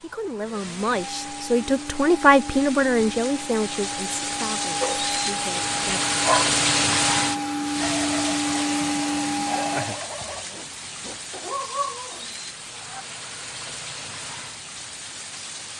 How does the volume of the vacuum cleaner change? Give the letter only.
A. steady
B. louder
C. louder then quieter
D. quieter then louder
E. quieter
B.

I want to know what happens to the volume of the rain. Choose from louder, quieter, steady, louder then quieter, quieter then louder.
louder then quieter.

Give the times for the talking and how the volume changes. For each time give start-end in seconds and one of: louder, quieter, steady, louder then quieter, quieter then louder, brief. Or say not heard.
0.0-6.2 louder then quieter.